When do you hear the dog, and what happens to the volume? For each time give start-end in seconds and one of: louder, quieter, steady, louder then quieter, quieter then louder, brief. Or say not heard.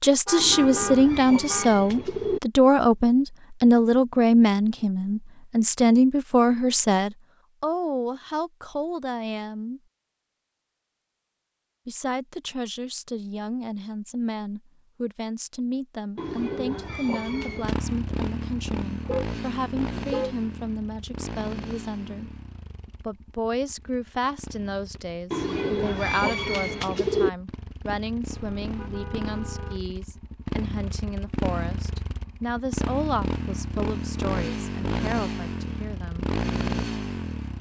not heard.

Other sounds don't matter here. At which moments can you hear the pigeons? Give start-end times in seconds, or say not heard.
0.3-2.4, 16.1-17.8, 25.3-27.3.